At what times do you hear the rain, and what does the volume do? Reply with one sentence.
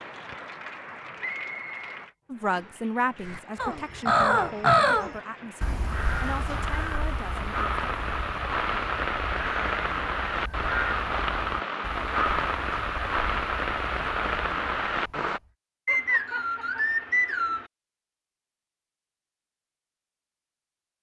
The rain can be heard from 0.0 to 15.4 s, getting louder.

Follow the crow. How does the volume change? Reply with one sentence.
The loudness of the crow goes down.